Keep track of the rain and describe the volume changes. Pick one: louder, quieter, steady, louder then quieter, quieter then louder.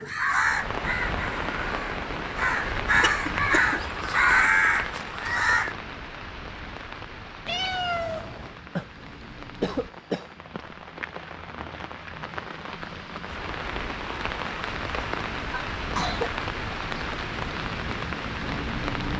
quieter then louder.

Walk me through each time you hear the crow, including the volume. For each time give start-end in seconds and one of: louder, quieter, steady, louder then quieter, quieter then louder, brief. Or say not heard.
0.0-5.8 quieter then louder.